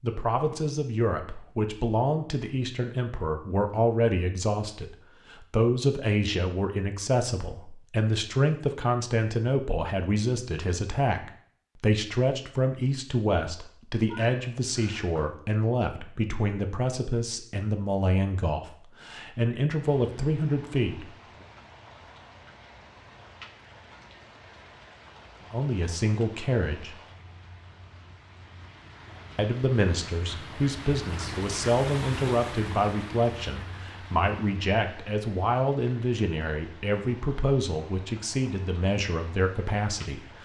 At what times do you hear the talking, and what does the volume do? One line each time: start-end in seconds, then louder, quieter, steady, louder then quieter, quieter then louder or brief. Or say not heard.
0.0-21.1 steady
25.5-26.9 brief
29.4-40.3 steady.